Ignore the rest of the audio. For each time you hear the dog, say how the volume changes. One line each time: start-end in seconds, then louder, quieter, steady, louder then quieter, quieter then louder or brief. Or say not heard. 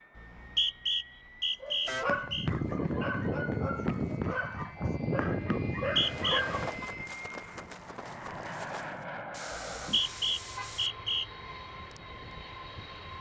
1.6-6.7 steady.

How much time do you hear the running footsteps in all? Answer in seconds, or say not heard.
7 s.